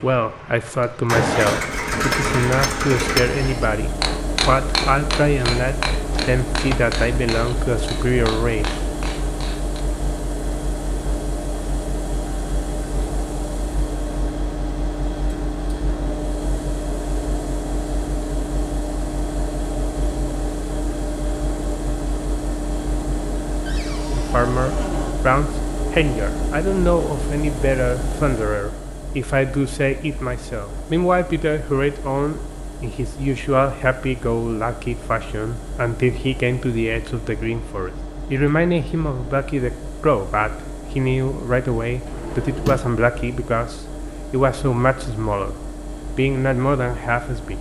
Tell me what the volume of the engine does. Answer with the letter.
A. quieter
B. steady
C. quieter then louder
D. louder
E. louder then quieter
A.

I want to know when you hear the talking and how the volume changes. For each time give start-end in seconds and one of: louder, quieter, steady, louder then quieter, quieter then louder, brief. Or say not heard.
0.0-8.7 steady
24.1-47.5 steady.